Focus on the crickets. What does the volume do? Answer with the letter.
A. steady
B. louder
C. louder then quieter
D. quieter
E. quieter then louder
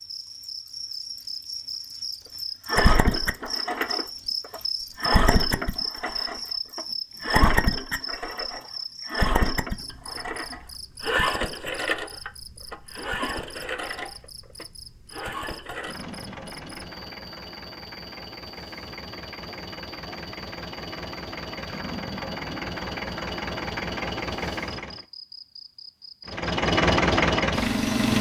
D.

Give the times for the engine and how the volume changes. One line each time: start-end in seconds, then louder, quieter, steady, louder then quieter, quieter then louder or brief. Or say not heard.
2.6-25.0 quieter then louder
26.3-28.1 brief.